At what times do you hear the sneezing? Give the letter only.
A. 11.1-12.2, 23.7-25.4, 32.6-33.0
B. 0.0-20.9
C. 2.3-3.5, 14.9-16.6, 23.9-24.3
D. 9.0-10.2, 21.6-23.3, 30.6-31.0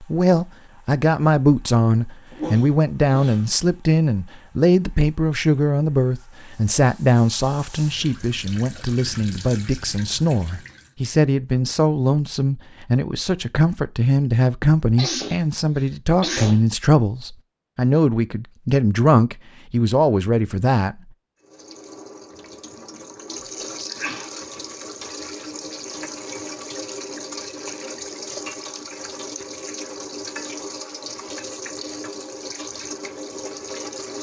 C.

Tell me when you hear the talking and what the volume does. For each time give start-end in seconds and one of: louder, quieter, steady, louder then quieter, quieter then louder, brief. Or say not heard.
0.0-20.9 steady.